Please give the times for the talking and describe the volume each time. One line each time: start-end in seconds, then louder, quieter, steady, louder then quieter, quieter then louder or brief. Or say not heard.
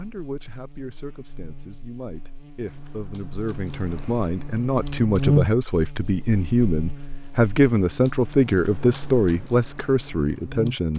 0.0-10.9 louder.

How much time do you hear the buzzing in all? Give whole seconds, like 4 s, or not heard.
11 s.